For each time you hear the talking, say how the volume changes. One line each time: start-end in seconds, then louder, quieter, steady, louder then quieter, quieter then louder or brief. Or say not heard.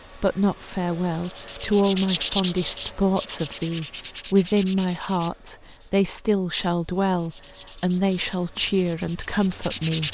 0.1-10.0 steady.